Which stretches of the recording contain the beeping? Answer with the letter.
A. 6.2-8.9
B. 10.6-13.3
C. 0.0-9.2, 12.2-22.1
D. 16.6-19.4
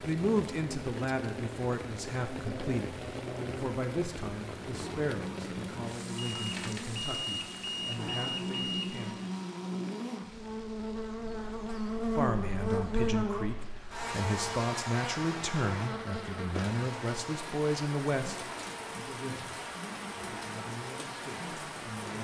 A.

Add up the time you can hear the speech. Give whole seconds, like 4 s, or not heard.
19 s.